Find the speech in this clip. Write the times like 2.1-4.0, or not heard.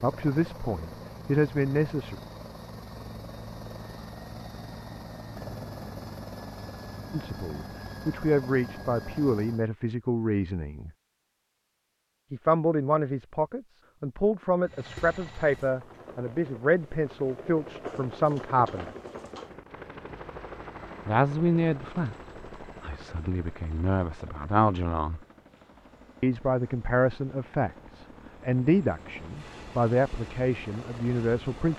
0.0-2.1, 7.1-10.9, 12.3-18.9, 21.1-25.2, 26.2-31.7.